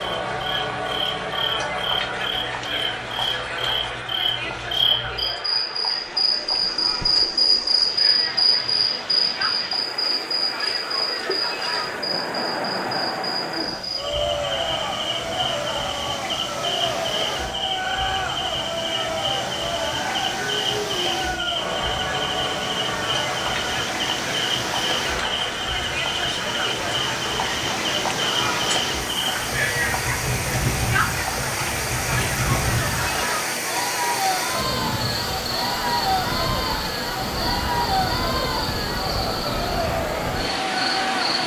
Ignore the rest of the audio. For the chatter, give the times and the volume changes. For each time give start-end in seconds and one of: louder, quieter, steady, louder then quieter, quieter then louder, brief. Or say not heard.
0.0-41.4 steady.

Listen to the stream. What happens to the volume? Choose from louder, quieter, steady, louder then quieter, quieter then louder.
louder.